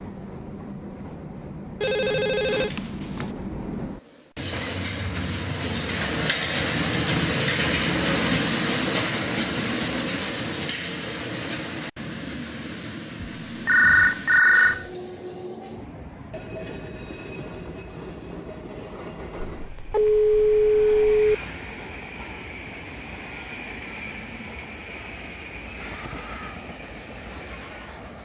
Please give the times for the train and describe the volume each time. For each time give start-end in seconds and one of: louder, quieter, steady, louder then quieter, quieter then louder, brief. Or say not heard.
0.0-28.2 louder then quieter.